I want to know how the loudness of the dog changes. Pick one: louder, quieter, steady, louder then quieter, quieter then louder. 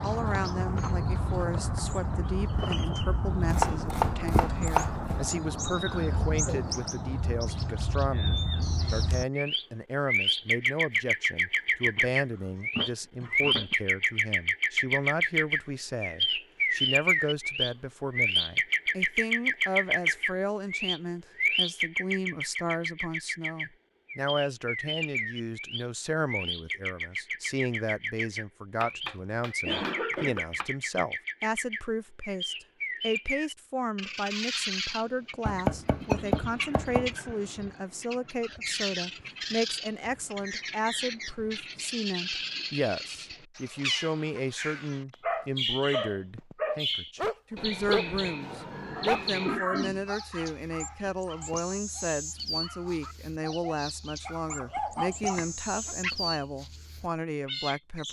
quieter then louder.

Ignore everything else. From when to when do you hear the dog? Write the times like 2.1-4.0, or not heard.
45.2-56.1.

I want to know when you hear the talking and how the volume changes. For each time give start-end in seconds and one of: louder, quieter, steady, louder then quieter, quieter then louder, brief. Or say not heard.
0.0-58.0 steady.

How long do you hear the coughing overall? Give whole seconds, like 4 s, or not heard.
4 s.